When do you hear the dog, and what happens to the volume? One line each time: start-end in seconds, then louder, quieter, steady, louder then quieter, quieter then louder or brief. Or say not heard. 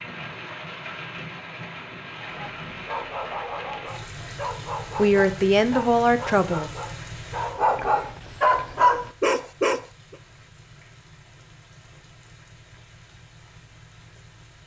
2.1-10.2 louder.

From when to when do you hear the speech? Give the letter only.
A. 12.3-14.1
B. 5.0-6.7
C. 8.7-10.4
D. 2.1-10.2
B.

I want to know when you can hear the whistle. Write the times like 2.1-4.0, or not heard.
not heard.